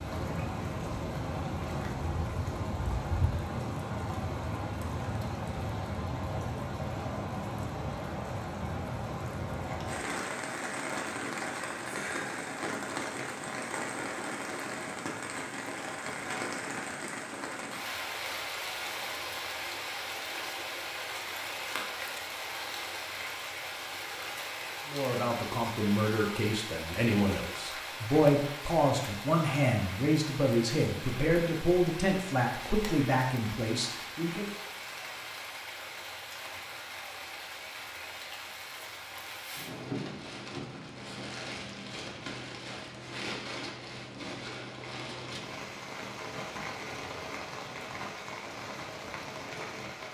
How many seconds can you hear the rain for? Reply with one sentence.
You can hear the rain for 50 seconds altogether.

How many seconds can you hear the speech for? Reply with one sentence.
The speech can be heard for 10 seconds in total.